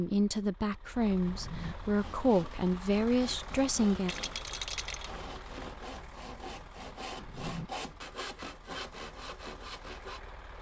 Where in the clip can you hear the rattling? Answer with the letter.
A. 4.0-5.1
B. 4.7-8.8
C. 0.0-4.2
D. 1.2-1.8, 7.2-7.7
A.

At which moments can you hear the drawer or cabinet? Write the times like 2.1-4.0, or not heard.
1.2-1.8, 7.2-7.7.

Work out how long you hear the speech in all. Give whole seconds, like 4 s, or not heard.
4 s.